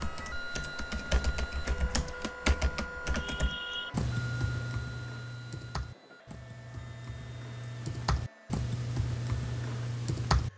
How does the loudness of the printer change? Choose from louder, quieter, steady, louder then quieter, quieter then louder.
quieter.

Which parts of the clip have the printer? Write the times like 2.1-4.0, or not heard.
0.0-10.5.